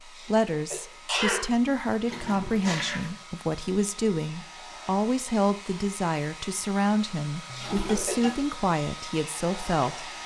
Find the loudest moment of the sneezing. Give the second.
1 s.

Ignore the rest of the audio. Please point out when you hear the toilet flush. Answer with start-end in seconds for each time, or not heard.
2.0-3.2, 7.5-8.4.